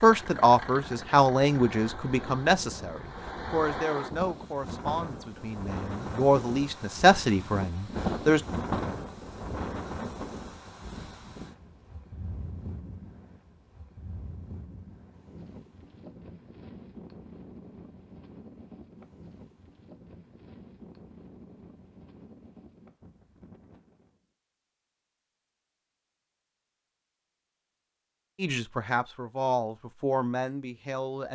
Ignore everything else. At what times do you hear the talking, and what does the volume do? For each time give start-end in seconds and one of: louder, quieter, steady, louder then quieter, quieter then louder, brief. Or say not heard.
0.0-8.4 quieter then louder
28.4-31.3 brief.